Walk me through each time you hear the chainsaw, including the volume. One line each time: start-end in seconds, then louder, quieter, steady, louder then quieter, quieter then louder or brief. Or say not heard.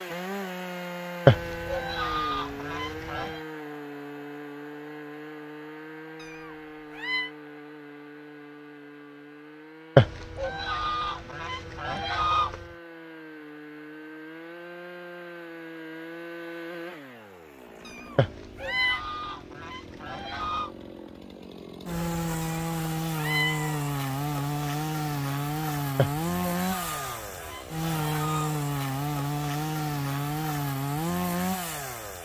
0.0-32.1 quieter then louder.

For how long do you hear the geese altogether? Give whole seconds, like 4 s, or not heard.
10 s.